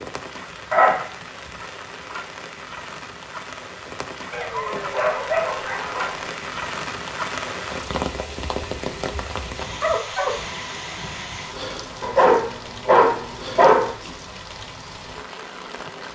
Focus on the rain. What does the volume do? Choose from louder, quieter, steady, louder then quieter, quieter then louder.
louder then quieter.